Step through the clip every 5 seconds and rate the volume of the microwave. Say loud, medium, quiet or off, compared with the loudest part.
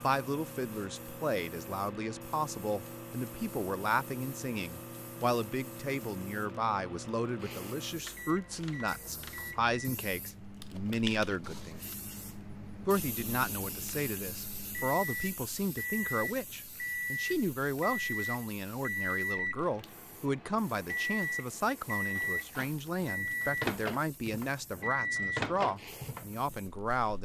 medium, medium, medium, loud, loud, loud.